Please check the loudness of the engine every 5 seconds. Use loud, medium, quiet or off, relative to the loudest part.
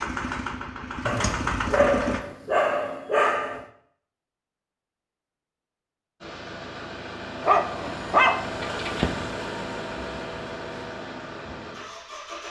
loud, loud, medium.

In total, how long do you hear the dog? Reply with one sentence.
The dog can be heard for 4 seconds in total.